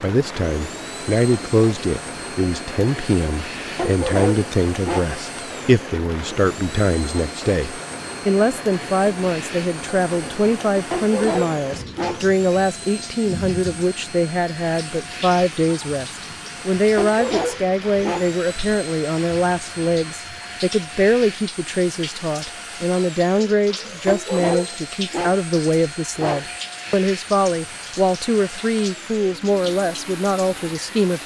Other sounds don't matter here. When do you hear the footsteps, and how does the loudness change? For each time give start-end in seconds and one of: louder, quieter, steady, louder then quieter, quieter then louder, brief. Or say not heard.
not heard.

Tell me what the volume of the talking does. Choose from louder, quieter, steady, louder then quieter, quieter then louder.
steady.